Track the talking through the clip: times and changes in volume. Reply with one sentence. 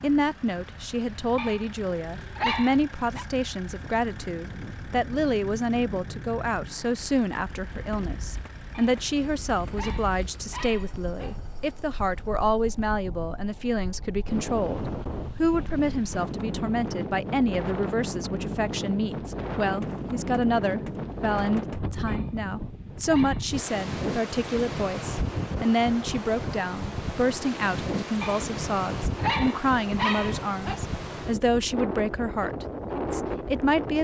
The talking can be heard from 0.0 to 33.9 s, at a steady volume.